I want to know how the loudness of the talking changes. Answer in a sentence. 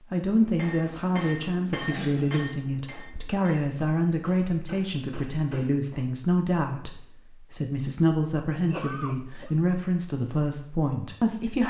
The loudness of the talking stays about the same.